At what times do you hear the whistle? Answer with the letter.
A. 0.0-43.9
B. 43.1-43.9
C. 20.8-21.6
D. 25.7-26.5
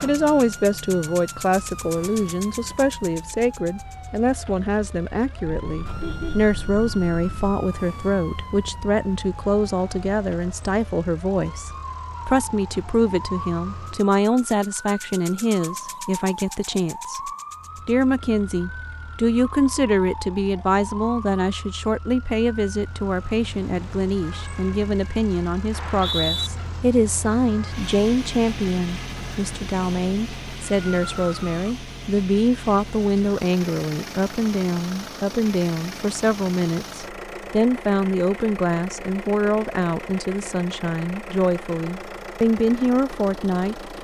D.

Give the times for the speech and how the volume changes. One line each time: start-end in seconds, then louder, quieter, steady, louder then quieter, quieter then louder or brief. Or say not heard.
0.0-43.9 steady.